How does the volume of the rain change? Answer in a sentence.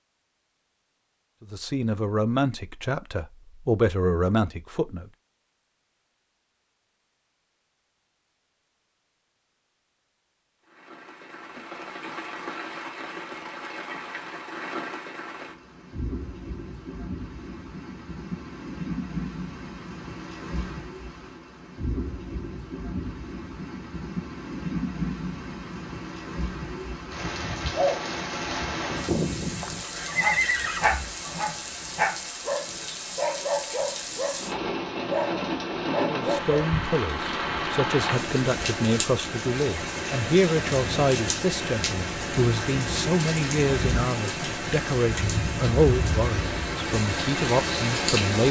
The volume of the rain goes up.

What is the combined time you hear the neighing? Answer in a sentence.
The neighing can be heard for 2 seconds in total.